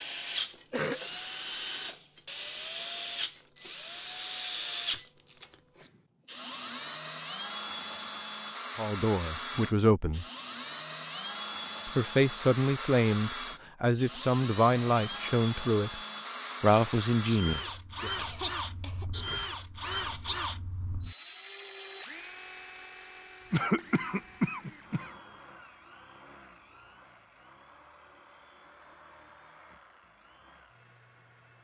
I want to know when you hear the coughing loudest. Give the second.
24 s.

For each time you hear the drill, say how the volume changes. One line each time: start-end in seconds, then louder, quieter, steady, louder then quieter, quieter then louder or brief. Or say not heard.
0.0-31.5 quieter.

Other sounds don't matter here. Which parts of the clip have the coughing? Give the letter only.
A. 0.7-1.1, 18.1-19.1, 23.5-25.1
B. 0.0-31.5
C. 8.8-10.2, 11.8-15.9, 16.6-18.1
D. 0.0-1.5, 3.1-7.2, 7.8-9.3
A.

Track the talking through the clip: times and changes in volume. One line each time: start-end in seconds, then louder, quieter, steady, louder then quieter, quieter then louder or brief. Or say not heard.
8.8-10.2 brief
11.8-15.9 steady
16.6-18.1 brief.